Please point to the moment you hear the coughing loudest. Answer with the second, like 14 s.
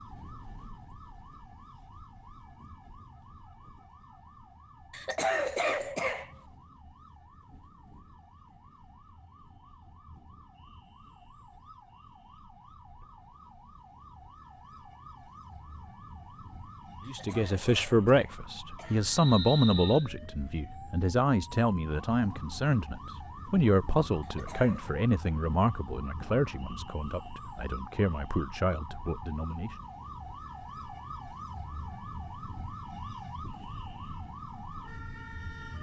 5 s.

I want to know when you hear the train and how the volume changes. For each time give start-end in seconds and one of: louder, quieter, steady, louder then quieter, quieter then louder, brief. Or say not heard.
not heard.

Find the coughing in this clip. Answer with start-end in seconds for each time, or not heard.
4.9-6.3, 17.0-19.0, 24.2-24.9.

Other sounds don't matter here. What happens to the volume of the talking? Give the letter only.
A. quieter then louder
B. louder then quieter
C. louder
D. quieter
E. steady
D.